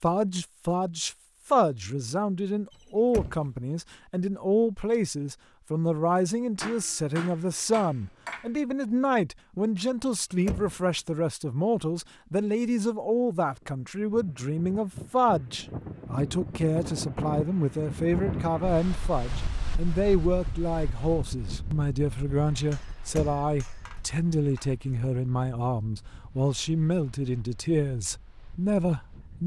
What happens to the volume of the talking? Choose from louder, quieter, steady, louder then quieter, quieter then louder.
steady.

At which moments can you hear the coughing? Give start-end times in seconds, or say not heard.
not heard.